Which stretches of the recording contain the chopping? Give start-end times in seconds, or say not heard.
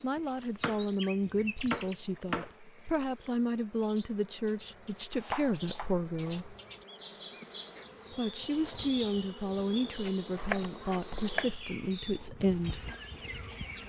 0.1-2.5, 5.1-6.4, 10.1-11.4.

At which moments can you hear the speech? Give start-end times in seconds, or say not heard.
0.0-6.5, 8.1-12.9.